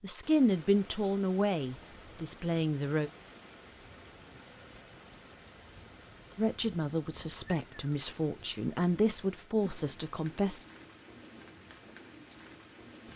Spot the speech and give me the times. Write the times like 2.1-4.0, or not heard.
0.0-3.1, 6.3-10.6.